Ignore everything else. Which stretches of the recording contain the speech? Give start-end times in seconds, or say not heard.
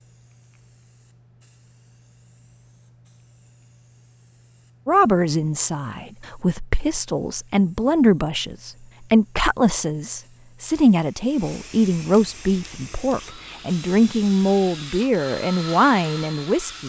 4.8-16.8.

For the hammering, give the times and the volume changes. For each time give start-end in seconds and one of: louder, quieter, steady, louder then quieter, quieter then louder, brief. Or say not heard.
not heard.